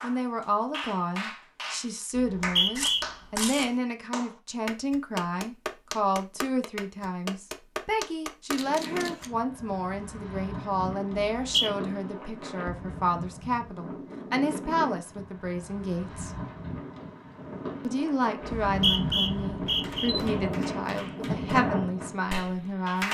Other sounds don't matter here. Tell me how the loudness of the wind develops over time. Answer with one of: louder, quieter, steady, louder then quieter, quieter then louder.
louder.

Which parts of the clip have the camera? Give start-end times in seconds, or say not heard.
2.8-3.7, 8.5-9.3, 18.5-20.2.